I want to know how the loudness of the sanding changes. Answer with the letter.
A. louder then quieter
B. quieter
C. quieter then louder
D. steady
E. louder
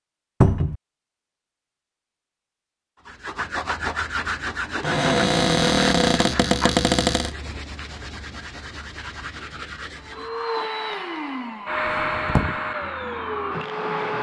B.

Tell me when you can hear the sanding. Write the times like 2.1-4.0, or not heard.
3.0-10.5.